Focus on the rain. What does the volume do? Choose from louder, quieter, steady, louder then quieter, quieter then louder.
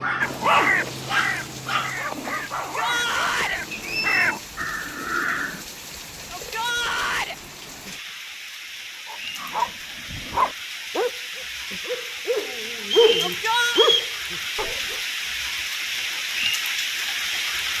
louder.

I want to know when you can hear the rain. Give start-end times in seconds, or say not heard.
0.1-17.7.